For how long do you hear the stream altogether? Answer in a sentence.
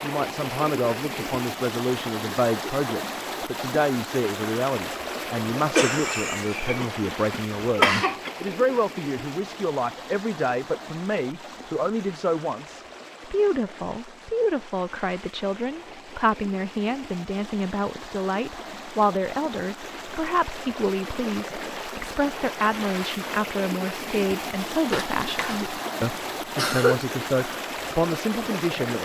You can hear the stream for 29 seconds altogether.